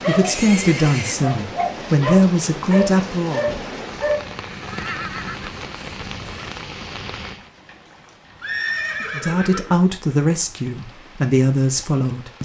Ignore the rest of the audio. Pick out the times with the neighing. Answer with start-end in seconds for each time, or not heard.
0.2-1.2, 4.5-6.5, 8.4-9.8.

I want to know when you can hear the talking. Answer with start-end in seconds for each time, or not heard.
0.1-3.5, 9.0-12.4.